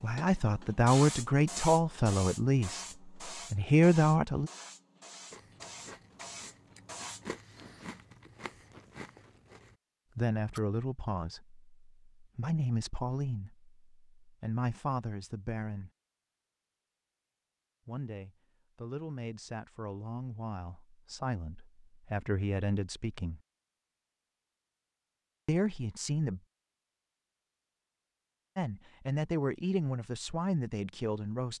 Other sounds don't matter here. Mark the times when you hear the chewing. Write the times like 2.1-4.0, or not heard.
5.3-10.6.